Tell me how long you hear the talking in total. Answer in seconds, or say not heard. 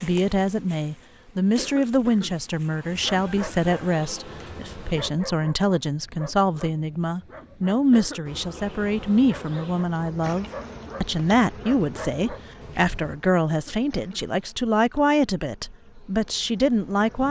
17 s.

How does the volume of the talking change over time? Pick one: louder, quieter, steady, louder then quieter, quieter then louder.
steady.